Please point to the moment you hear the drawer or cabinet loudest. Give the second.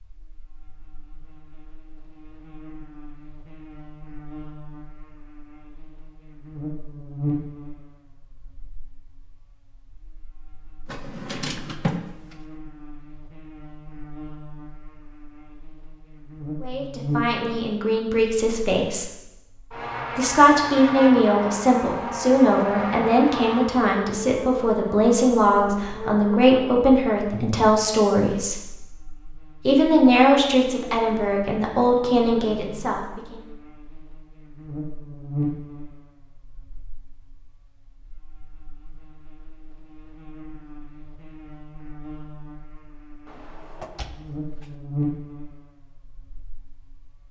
12 s.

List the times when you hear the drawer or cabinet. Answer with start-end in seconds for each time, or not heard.
10.8-12.1, 43.2-44.8.